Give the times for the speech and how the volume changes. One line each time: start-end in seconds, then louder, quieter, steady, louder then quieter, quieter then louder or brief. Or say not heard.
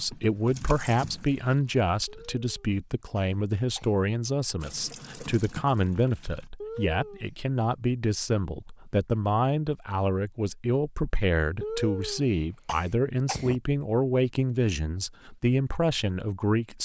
0.0-16.8 steady.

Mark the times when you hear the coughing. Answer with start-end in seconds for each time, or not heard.
2.0-4.0, 6.6-7.3, 11.6-13.6.